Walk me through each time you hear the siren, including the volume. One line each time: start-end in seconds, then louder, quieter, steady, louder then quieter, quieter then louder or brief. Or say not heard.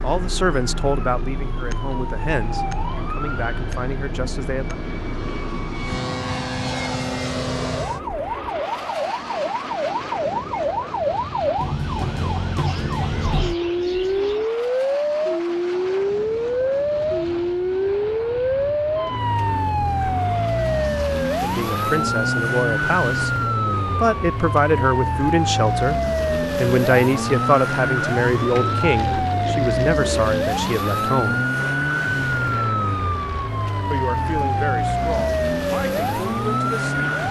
0.0-37.2 louder.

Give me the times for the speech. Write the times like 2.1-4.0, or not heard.
0.0-4.8, 21.4-23.4, 23.9-31.4, 33.9-37.2.